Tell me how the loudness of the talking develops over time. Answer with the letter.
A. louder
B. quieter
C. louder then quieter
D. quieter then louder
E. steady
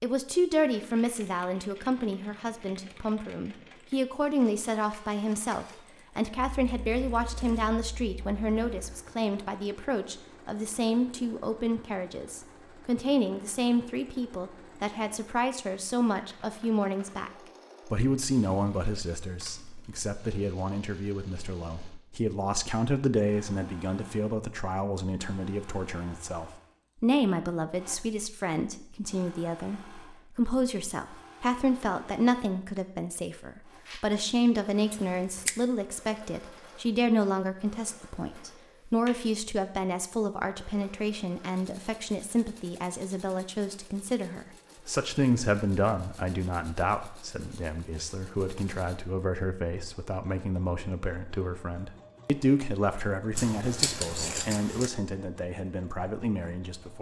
E.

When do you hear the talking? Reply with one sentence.
You can hear the talking from 0.0 to 56.9 s.